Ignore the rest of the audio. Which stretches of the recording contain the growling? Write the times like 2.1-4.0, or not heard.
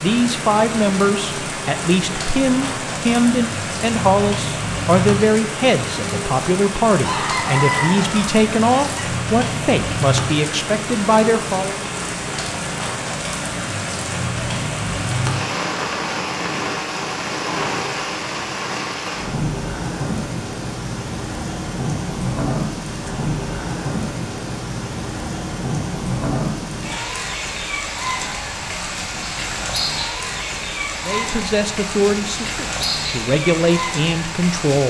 not heard.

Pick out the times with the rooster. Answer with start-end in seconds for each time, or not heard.
7.0-9.1.